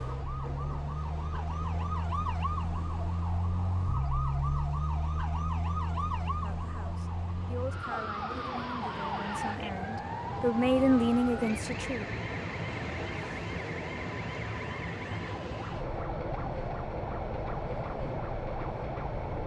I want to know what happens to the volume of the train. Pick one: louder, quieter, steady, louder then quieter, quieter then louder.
louder.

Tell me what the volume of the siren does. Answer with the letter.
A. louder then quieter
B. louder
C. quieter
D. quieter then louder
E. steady
C.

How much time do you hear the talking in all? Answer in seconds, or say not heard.
6 s.